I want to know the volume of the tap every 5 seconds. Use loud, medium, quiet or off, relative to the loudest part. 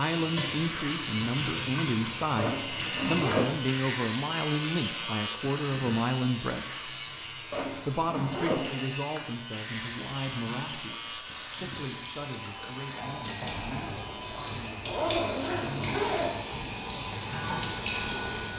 loud, medium, medium, loud.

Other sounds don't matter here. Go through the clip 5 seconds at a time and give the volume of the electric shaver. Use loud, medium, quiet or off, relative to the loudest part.
loud, loud, medium, medium.